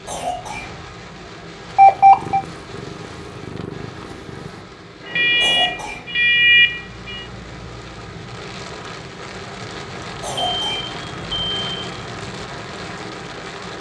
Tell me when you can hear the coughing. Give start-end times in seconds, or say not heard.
0.1-0.8, 5.4-6.0, 10.2-10.9.